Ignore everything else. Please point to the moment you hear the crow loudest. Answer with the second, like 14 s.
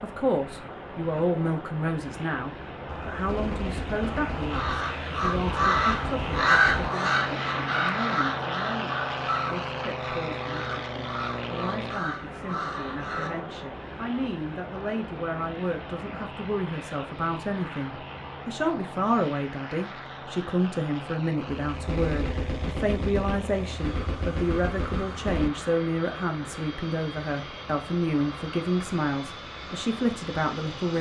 7 s.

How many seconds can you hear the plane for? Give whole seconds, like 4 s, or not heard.
31 s.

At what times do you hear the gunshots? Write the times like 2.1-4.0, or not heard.
2.9-6.9, 21.6-25.5.